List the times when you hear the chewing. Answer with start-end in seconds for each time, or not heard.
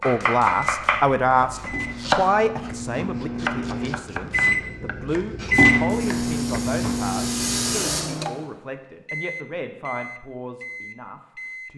not heard.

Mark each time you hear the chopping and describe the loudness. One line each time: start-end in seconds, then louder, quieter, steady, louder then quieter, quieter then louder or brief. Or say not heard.
0.0-6.3 quieter.